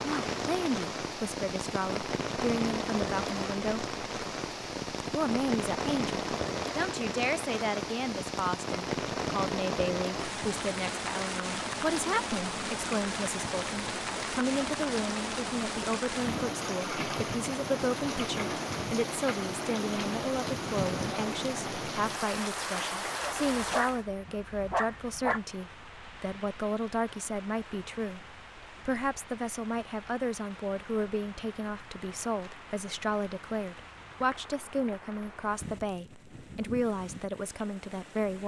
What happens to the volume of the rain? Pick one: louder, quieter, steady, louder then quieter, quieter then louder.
quieter.